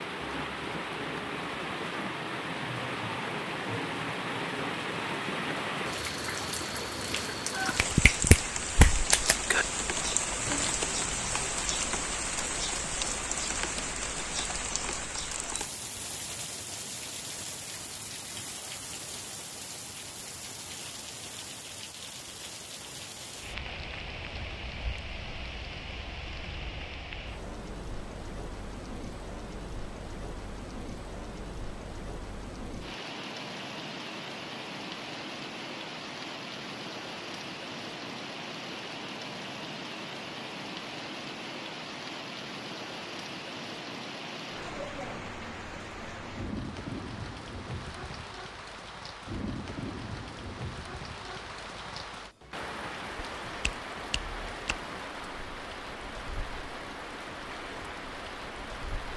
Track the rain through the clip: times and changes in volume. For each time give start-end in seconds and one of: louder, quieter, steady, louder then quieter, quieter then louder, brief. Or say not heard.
0.0-59.1 quieter.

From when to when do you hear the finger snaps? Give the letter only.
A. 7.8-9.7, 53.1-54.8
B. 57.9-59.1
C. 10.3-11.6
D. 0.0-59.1
A.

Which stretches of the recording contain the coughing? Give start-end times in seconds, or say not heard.
10.3-11.6.